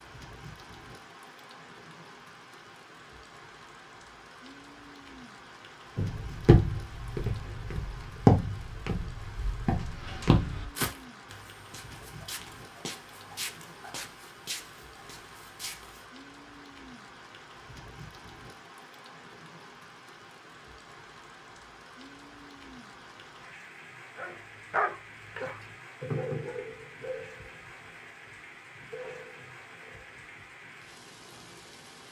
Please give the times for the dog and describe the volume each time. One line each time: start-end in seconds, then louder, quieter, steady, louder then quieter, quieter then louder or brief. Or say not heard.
24.1-30.9 quieter.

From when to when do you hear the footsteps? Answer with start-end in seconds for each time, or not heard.
6.0-16.1.